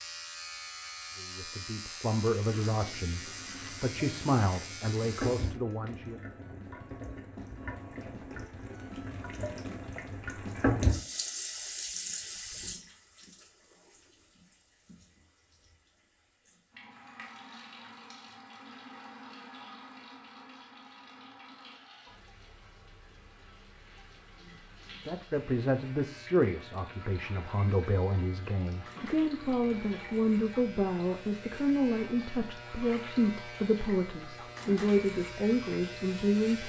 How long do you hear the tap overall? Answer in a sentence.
You can hear the tap for 34 seconds altogether.